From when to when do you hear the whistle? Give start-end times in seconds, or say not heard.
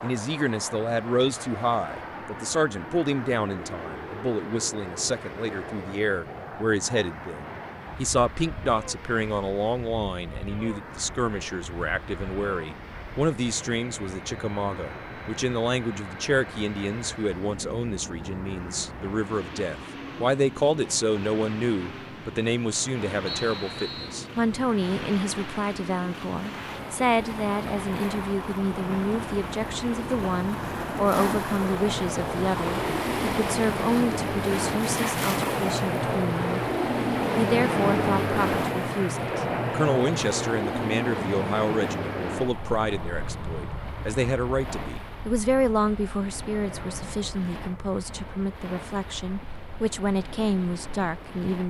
23.2-24.1.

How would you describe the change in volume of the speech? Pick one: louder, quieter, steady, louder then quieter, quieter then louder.
steady.